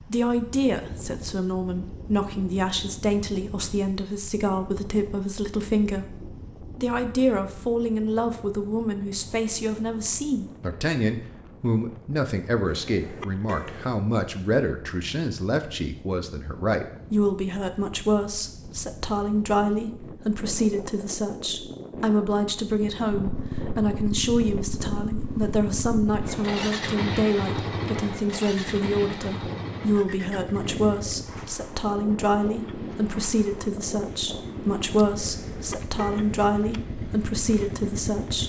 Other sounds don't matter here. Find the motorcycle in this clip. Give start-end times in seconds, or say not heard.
23.1-38.4.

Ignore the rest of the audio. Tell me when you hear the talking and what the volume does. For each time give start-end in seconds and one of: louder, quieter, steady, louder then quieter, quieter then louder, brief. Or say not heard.
0.1-38.4 steady.